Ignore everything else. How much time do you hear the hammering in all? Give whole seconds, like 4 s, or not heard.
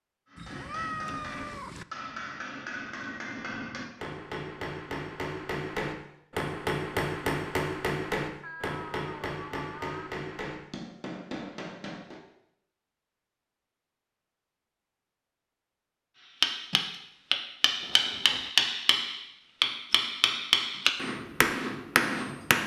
18 s.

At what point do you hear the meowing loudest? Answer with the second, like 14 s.
1 s.